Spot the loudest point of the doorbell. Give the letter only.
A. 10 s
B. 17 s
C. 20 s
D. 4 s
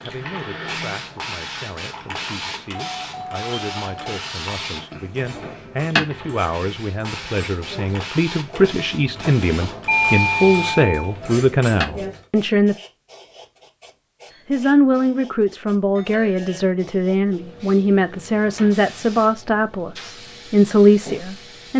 A.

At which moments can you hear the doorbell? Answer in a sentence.
The doorbell can be heard from 2.9 to 4.2 s, from 9.8 to 11.2 s and from 15.9 to 16.7 s.